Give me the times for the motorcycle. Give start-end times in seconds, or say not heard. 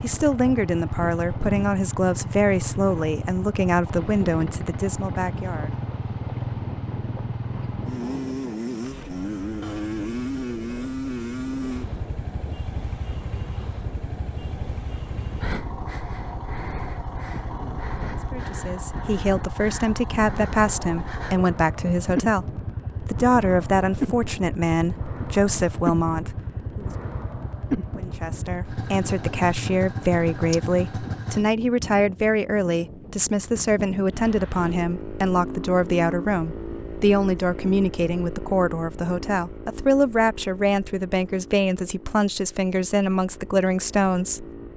0.0-31.4, 34.5-44.7.